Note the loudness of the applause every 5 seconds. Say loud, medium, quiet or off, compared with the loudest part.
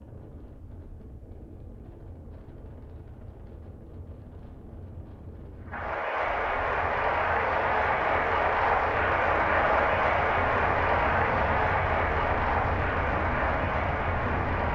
off, loud, loud.